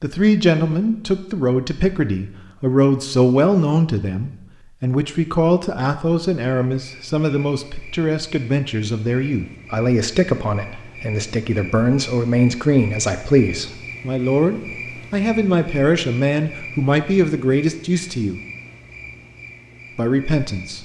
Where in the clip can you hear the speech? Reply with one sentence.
You can hear the speech from 0.0 to 18.4 s and from 19.9 to 20.8 s.